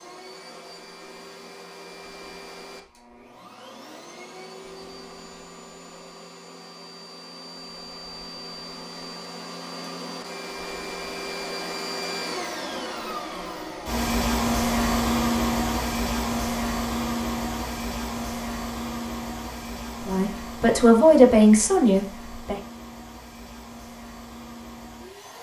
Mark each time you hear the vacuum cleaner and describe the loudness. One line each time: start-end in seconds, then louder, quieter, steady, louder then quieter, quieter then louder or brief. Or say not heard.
0.0-25.3 louder then quieter.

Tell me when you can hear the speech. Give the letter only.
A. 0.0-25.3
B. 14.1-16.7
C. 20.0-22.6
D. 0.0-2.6
C.